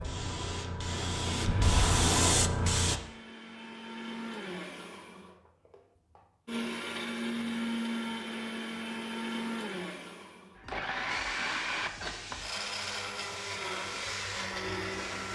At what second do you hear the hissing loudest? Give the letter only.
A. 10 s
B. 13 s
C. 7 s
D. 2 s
D.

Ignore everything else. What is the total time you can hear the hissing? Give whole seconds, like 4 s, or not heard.
7 s.